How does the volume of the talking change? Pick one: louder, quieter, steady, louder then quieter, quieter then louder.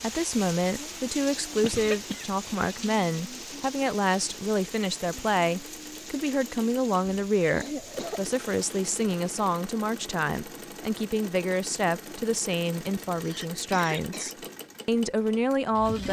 steady.